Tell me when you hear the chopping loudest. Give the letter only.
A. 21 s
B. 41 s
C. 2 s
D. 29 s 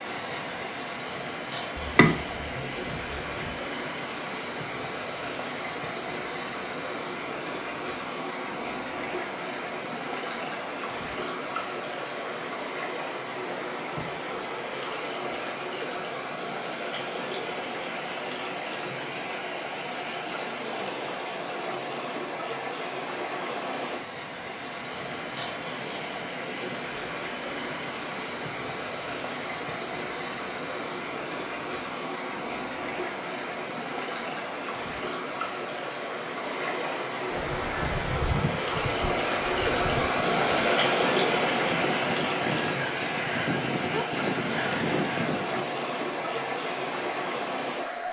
C.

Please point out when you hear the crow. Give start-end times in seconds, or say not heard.
37.3-45.7.